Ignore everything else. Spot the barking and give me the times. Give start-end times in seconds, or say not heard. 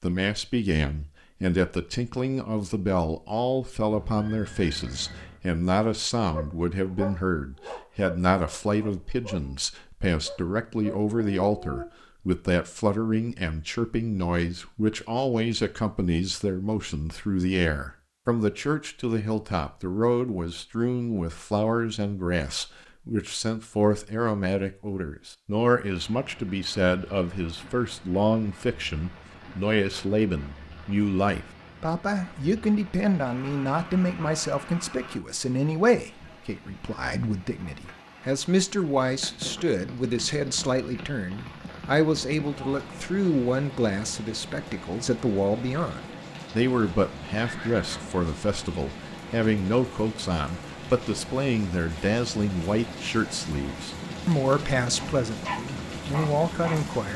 6.2-11.8, 54.9-57.1.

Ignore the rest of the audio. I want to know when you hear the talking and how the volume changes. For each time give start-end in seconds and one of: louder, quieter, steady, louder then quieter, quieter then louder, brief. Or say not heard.
0.0-57.1 steady.